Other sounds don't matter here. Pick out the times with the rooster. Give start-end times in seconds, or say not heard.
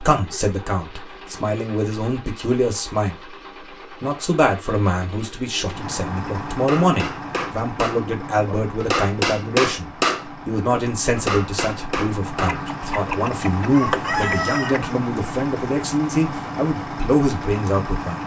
12.3-14.9.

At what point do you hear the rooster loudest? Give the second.
14 s.